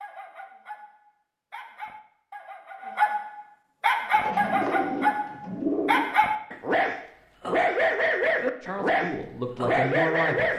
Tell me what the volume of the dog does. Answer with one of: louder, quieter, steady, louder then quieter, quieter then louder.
louder.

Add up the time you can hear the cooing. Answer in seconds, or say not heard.
2 s.